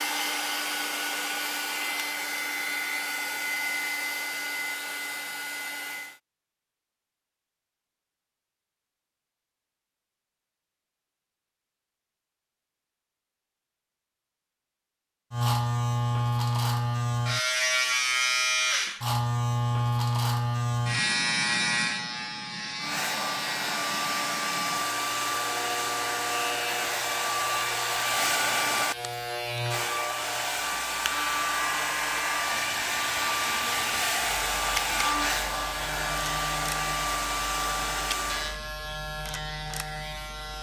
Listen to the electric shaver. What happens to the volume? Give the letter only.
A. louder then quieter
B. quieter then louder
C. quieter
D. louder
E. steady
C.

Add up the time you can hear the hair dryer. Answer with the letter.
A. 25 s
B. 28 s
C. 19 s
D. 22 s
D.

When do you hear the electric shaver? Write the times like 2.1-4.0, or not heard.
15.3-40.5.